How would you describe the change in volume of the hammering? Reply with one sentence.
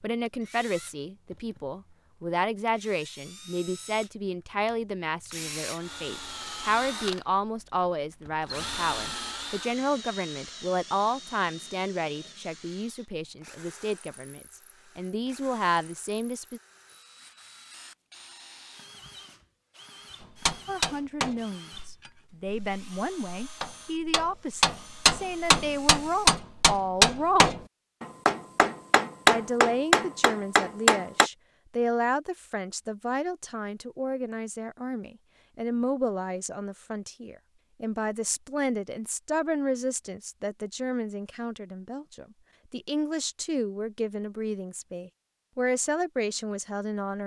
The volume of the hammering goes up.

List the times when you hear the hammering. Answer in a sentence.
The hammering can be heard from 20.4 to 31.3 s.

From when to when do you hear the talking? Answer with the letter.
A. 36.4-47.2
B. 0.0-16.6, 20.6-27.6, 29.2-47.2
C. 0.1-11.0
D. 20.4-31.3
B.